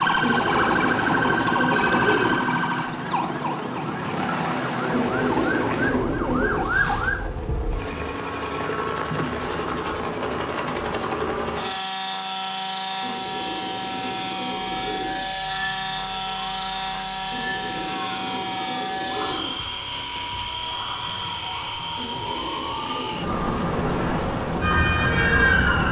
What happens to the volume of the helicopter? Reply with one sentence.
The volume of the helicopter stays about the same.